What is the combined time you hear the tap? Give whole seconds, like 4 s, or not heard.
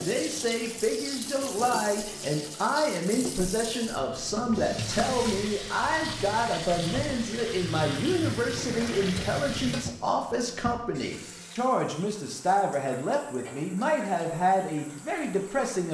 16 s.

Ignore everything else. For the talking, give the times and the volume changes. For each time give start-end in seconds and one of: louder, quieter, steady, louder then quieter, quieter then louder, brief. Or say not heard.
0.0-15.8 steady.